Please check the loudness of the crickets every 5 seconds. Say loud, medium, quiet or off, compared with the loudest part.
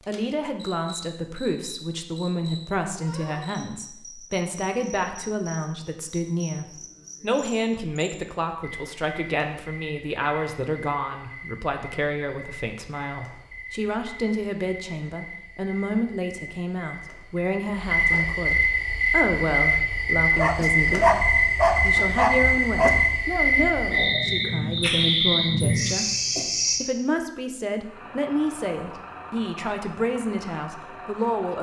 quiet, quiet, quiet, loud, loud, loud, off.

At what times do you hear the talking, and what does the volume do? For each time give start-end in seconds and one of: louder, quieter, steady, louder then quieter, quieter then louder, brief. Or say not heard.
0.1-31.5 steady.